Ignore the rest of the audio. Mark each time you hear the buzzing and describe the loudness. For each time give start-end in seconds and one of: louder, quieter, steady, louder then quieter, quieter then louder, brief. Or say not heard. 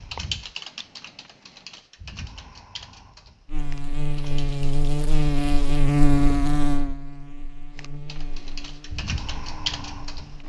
3.5-10.4 louder then quieter.